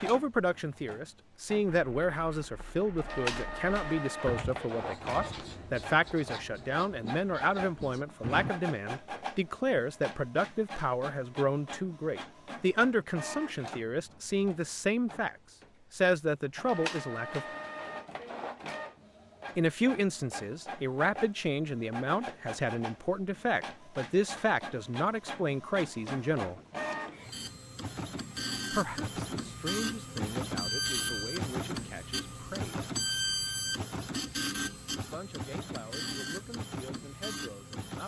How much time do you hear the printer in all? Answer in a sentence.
The printer can be heard for 38 seconds in total.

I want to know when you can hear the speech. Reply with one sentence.
You can hear the speech from 0.0 to 17.4 s, from 19.6 to 26.6 s, from 28.7 to 32.8 s and from 35.0 to 38.0 s.